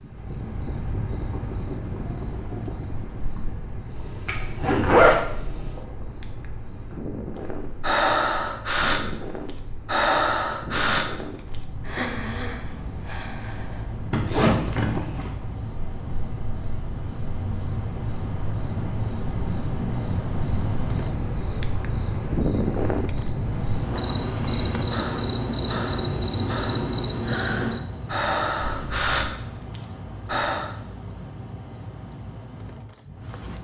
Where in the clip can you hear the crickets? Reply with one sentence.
The crickets can be heard from 0.0 to 33.5 s.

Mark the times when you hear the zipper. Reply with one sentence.
You can hear the zipper from 4.2 to 5.2 s, from 14.1 to 15.3 s and from 28.6 to 29.1 s.